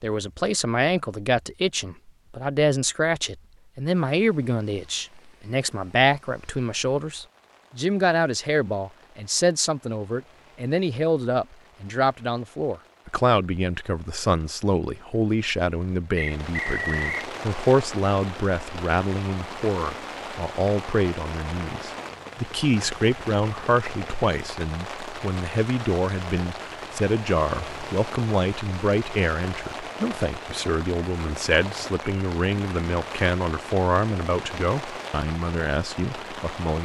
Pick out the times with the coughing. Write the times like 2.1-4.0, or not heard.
not heard.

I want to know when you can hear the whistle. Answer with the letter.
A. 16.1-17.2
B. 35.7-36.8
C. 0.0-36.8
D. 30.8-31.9
A.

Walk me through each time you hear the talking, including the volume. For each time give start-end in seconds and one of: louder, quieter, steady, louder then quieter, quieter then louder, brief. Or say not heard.
0.0-36.8 steady.